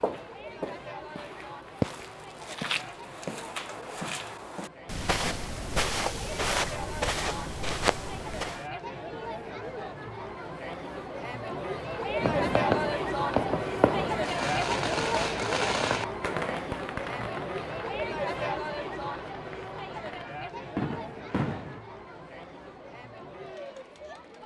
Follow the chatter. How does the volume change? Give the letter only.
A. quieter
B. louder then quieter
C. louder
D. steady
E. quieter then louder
B.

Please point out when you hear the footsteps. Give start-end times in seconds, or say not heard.
0.0-8.7.